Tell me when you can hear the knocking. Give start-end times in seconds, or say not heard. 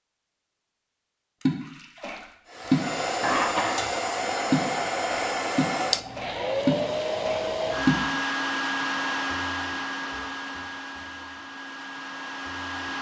not heard.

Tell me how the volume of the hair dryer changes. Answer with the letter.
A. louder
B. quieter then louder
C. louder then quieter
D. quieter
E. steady
D.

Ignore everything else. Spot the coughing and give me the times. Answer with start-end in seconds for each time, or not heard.
3.2-3.8.